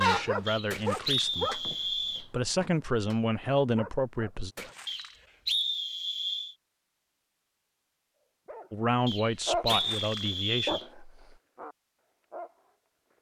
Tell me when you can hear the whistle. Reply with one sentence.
The whistle can be heard from 0.5 to 2.2 s, from 4.8 to 6.5 s and from 9.1 to 10.8 s.